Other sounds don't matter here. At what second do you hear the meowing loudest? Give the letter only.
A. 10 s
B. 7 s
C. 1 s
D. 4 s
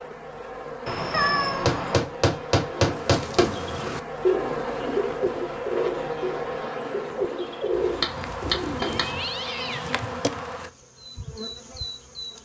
C.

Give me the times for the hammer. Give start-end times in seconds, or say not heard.
1.6-3.5, 7.7-9.3.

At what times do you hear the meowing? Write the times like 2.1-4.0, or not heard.
0.8-2.0, 8.8-10.0.